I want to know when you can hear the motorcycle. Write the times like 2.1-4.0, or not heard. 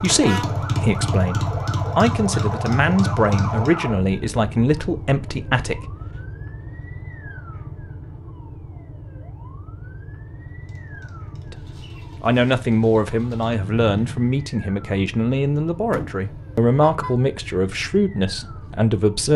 0.0-3.7, 10.6-14.3.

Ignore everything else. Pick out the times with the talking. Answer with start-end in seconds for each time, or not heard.
0.0-6.0, 11.4-19.3.